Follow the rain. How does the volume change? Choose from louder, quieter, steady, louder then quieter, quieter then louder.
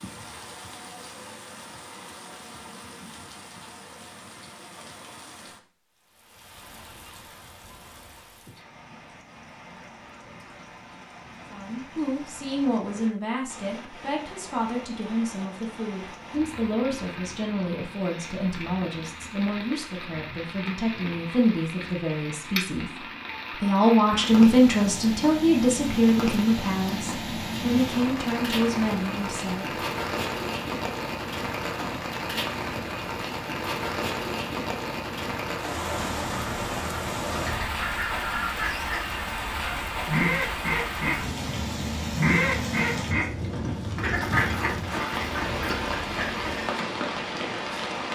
louder.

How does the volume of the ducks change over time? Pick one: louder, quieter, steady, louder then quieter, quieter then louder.
louder then quieter.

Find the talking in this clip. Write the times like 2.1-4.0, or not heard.
11.5-22.9, 23.6-29.7.